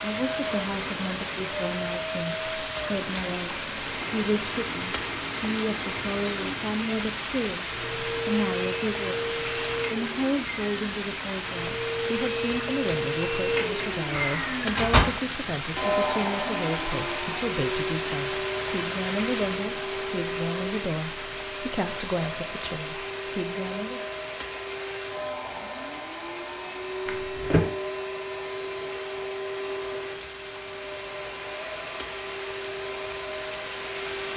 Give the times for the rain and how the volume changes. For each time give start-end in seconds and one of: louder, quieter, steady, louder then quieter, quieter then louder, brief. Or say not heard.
0.0-34.3 quieter.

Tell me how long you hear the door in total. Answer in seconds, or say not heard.
2 s.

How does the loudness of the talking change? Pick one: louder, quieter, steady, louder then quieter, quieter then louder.
steady.